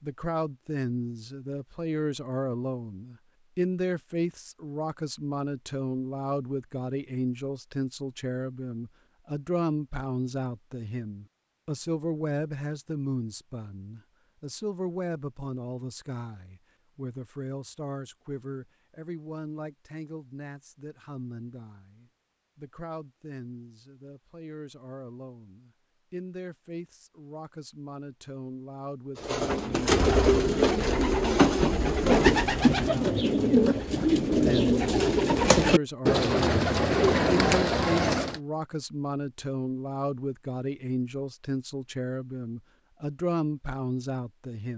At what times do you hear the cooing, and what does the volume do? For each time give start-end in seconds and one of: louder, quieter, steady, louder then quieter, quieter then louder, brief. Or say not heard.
29.1-38.4 steady.